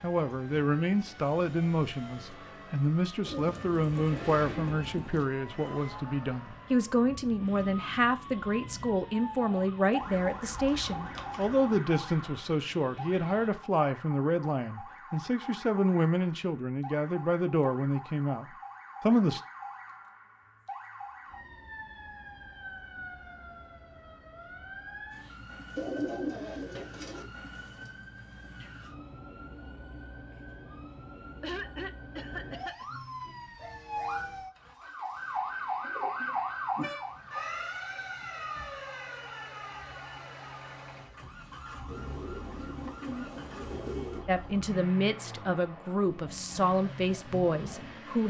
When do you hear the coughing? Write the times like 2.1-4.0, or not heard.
31.4-32.9.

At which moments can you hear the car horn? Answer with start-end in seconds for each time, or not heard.
not heard.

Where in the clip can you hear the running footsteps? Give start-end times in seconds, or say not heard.
not heard.